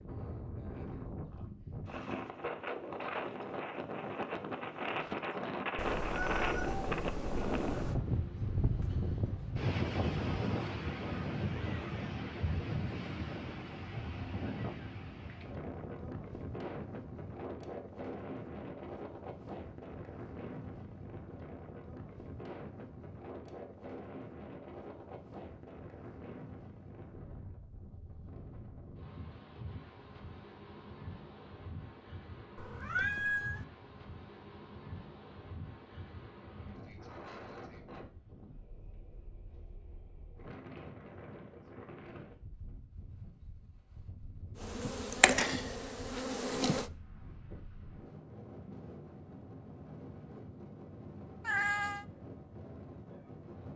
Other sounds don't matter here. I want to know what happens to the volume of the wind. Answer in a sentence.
The volume of the wind goes down.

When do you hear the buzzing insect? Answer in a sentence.
The buzzing insect can be heard from 44.5 to 46.9 s.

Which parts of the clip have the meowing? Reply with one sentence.
You can hear the meowing from 5.8 to 8.0 s, from 32.5 to 33.6 s and from 51.4 to 52.0 s.